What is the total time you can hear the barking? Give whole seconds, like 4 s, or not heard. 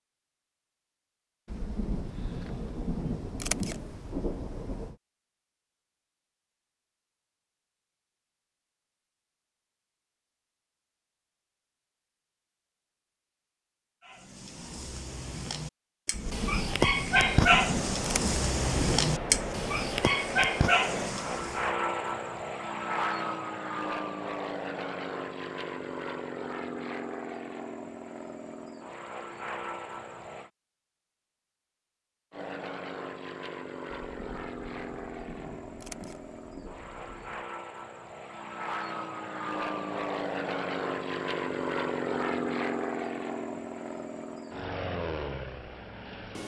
8 s.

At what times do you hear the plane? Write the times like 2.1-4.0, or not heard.
17.1-30.5, 32.3-46.4.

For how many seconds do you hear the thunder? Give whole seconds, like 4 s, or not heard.
11 s.